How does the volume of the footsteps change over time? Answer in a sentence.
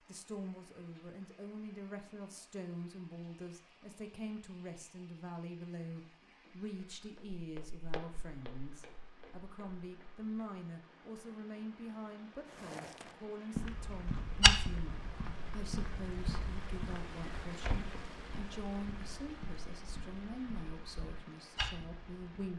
The volume of the footsteps goes up, then down.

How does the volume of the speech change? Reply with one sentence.
The loudness of the speech stays about the same.